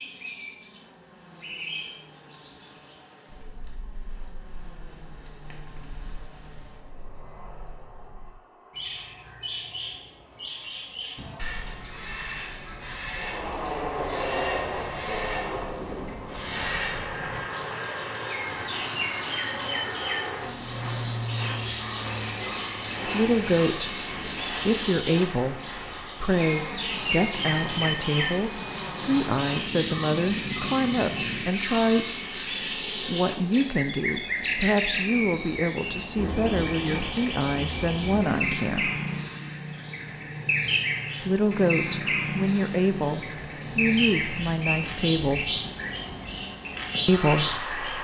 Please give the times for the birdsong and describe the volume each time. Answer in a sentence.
The birdsong can be heard from 0.0 to 48.0 s, getting louder.